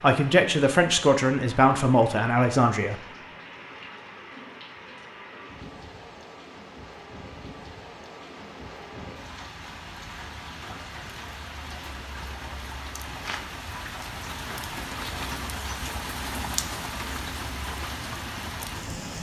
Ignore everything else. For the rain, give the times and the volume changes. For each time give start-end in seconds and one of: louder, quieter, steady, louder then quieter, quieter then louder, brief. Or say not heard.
0.0-19.1 louder.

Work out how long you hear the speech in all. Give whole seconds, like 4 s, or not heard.
3 s.